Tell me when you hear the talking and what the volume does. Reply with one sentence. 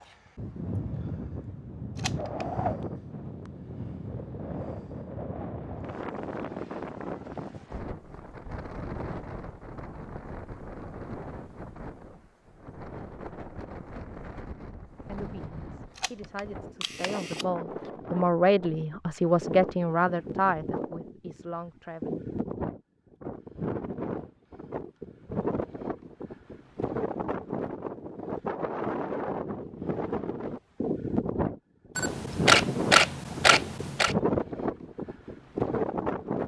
You can hear the talking from 15.1 to 22.2 s, getting louder then quieter.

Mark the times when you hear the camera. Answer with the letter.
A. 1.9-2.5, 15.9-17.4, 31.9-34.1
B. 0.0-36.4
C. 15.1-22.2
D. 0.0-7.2
A.